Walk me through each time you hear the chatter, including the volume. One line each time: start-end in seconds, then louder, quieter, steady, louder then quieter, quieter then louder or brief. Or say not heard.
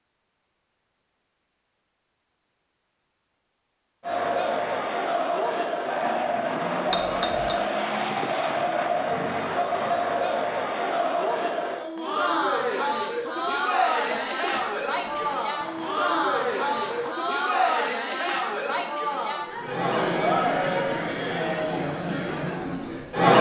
4.0-23.3 steady.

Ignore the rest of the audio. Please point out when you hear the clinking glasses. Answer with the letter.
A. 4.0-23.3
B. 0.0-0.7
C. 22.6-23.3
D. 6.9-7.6
D.